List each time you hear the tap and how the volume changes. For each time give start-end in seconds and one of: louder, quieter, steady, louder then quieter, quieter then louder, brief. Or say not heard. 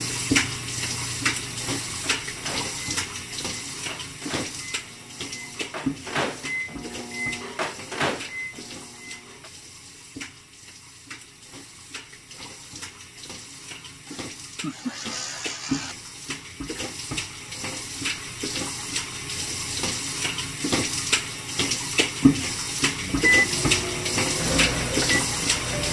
0.0-25.8 quieter then louder.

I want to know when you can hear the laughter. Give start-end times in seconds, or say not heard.
14.1-15.9.